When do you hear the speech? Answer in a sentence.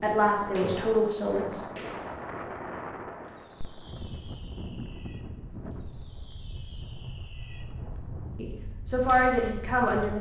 You can hear the speech from 0.0 to 1.6 s and from 8.3 to 10.1 s.